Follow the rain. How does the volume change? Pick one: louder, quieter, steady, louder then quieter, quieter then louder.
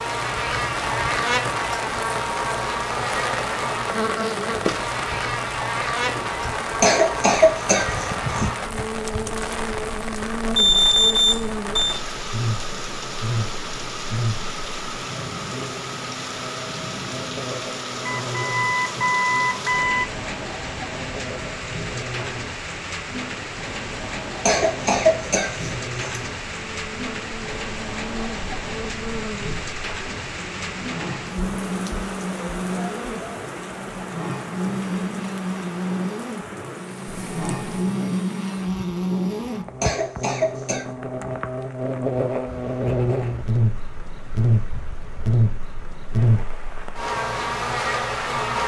quieter.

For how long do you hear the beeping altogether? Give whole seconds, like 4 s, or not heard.
4 s.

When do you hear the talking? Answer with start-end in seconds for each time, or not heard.
not heard.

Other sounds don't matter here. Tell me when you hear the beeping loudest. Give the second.
11 s.